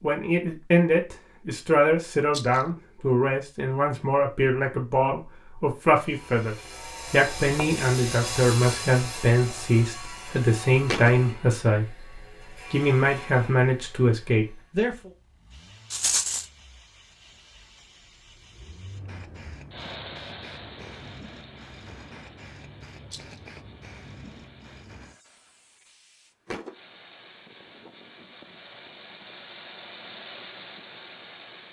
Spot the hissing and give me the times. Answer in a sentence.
You can hear the hissing from 15.5 to 26.8 s.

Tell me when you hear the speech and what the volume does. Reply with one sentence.
The speech can be heard from 0.0 to 12.0 s, at a steady volume; and briefly from 12.7 to 15.1 s.